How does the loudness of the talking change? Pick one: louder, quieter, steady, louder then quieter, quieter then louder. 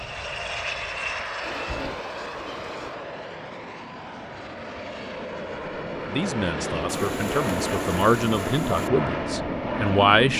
louder then quieter.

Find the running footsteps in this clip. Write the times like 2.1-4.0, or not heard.
not heard.